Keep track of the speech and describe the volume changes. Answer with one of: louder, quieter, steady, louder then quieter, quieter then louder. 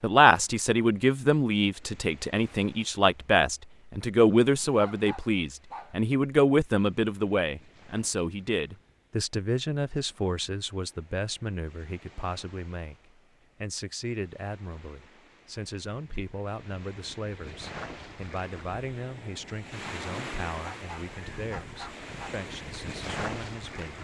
quieter.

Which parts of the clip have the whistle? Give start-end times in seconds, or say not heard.
not heard.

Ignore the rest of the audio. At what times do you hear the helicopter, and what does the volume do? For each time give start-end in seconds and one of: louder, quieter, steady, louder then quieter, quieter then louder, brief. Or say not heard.
not heard.